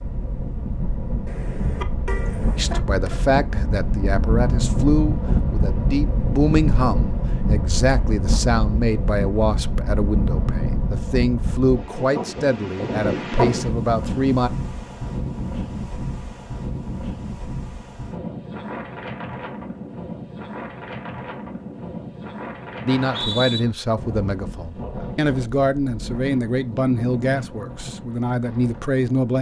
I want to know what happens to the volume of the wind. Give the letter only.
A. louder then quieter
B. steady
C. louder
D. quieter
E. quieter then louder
D.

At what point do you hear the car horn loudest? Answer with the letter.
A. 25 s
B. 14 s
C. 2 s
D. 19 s
C.